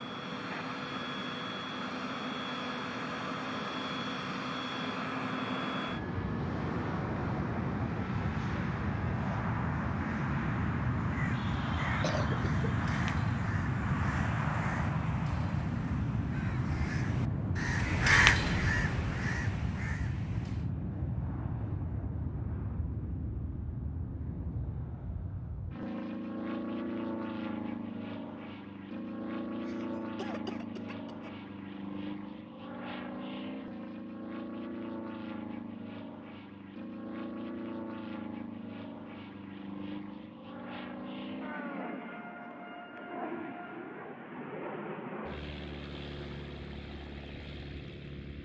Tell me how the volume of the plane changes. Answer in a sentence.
The volume of the plane goes down.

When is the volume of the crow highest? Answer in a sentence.
The volume of the crow peaks at 18 seconds.